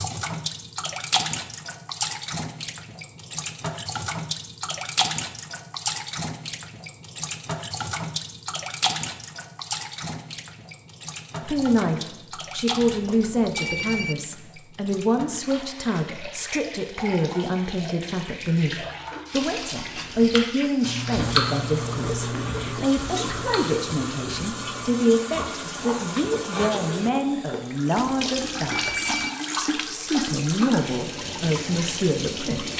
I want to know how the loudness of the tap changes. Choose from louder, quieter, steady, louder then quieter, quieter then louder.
quieter then louder.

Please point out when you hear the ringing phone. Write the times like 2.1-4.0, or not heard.
12.8-14.2, 28.0-29.3.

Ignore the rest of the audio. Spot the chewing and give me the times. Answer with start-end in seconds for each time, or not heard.
19.4-27.9.